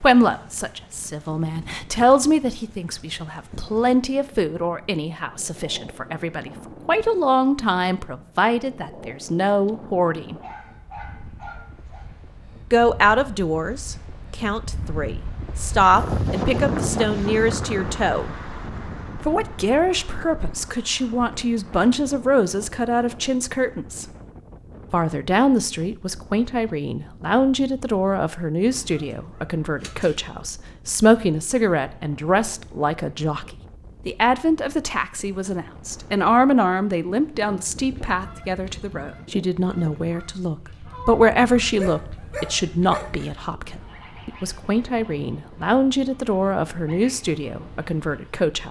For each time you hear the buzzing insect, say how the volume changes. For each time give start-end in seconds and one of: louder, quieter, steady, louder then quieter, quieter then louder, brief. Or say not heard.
not heard.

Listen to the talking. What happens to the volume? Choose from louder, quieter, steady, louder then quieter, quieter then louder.
steady.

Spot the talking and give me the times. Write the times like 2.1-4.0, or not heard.
0.0-10.3, 12.7-18.3, 19.2-24.1, 24.9-48.6.